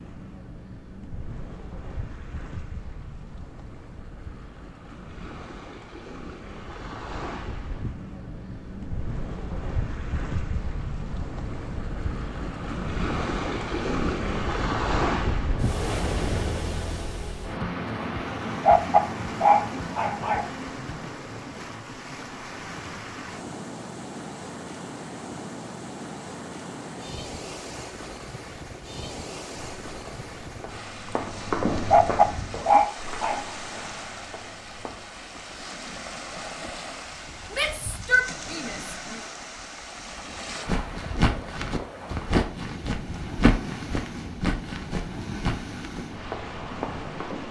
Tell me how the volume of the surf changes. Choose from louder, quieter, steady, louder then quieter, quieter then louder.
louder then quieter.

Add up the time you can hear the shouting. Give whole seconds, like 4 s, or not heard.
2 s.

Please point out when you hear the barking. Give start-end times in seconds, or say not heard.
18.6-20.5, 31.9-33.5.